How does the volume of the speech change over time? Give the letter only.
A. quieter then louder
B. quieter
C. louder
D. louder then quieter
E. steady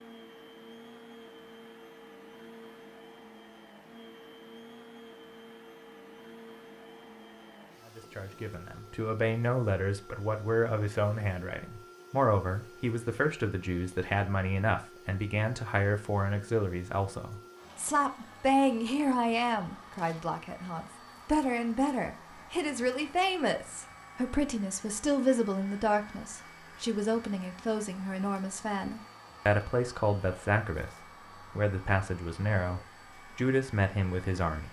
E.